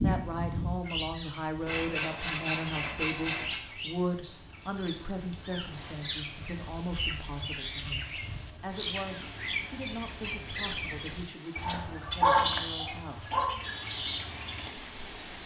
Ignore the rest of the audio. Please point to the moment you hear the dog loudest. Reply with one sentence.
The loudest moment of the dog is at 12 seconds.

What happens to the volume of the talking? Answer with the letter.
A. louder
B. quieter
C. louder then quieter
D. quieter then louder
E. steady
B.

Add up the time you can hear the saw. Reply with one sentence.
The saw can be heard for 2 seconds in total.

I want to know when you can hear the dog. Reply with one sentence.
The dog can be heard from 11.6 to 13.5 s.